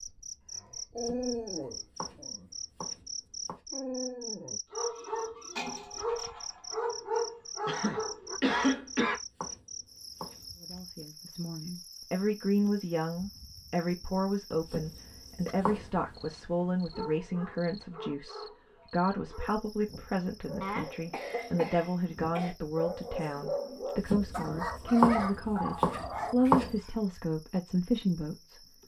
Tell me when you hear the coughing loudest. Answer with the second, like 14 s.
9 s.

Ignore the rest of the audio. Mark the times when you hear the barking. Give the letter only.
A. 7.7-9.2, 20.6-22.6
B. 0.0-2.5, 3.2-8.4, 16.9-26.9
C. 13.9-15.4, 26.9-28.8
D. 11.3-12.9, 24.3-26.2
B.